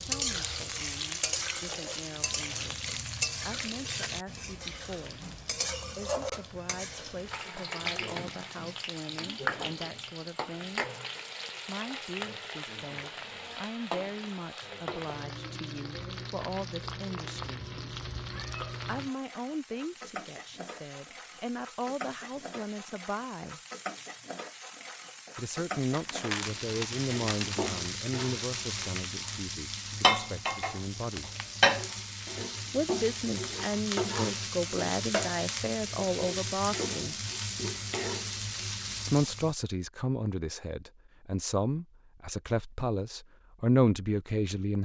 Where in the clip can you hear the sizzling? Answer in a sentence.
The sizzling can be heard from 0.0 to 39.5 s.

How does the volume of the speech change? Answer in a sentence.
The loudness of the speech goes up.